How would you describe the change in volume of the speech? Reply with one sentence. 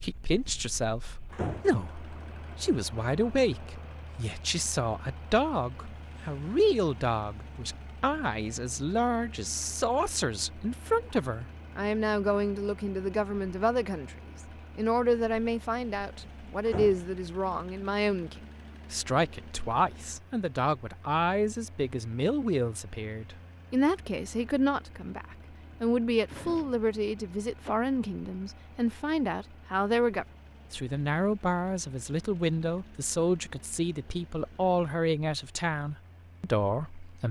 The loudness of the speech stays about the same.